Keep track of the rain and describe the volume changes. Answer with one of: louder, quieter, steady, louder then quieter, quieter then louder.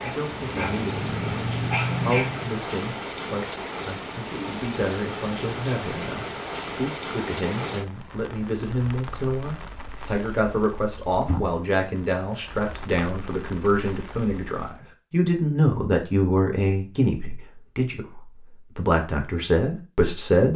quieter.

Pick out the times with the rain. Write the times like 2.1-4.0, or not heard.
0.0-14.8.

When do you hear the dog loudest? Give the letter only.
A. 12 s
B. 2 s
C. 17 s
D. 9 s
B.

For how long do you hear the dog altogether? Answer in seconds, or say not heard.
3 s.